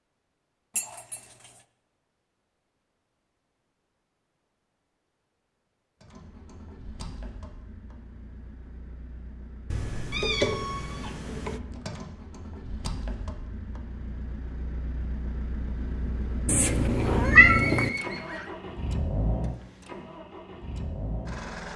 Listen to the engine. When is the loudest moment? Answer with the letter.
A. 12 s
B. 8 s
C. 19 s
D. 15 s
C.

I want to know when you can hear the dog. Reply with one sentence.
The dog can't be heard in this clip.